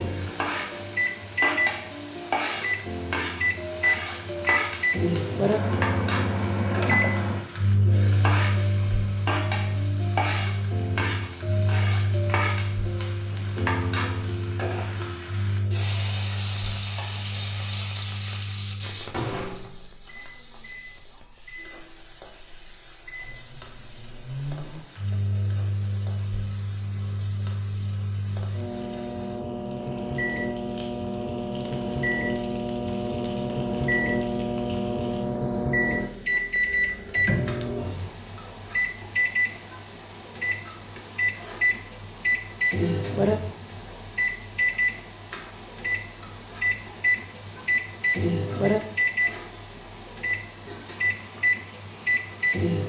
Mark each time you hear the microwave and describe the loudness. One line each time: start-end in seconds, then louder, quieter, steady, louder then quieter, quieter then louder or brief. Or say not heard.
0.0-52.8 quieter then louder.